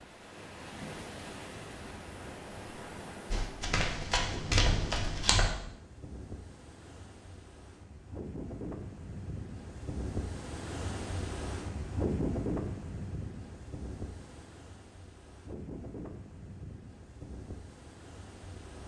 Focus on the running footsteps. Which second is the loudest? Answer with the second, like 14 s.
5 s.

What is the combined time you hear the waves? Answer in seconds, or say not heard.
19 s.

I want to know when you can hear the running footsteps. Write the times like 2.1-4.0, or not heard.
3.3-5.5.